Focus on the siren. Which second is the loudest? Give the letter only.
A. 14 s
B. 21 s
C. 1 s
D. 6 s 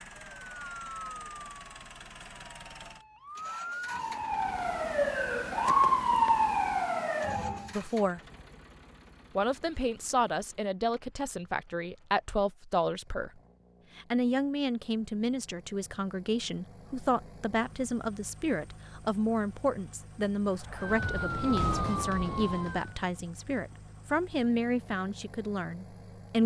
D.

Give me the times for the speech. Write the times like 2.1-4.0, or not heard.
7.7-8.2, 9.3-13.3, 13.9-26.4.